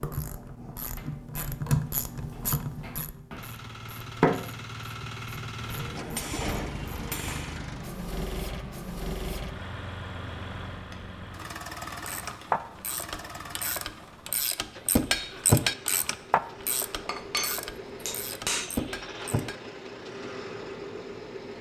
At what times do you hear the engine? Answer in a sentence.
You can hear the engine from 3.4 to 21.5 s.